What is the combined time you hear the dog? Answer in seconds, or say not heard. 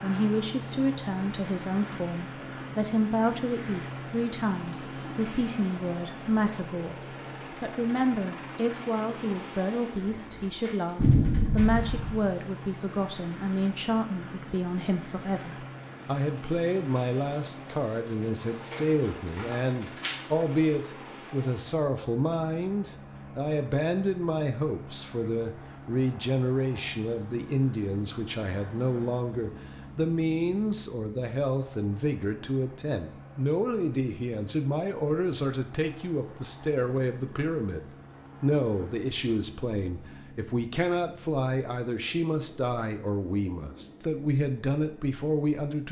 2 s.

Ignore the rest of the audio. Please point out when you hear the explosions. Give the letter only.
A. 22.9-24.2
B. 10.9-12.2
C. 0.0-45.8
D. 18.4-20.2
B.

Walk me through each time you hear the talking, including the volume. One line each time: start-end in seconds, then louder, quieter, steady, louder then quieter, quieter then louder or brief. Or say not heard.
0.0-45.8 steady.